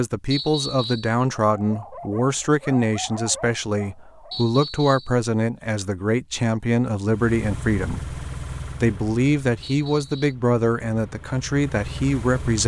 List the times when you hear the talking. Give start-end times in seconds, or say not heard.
0.0-8.2, 8.8-12.6.